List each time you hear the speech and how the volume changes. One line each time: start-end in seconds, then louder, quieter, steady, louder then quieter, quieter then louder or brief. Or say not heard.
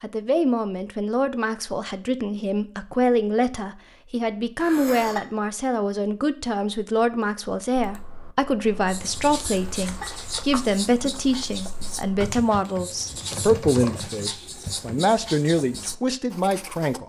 0.0-17.0 steady.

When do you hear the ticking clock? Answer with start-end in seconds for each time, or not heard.
not heard.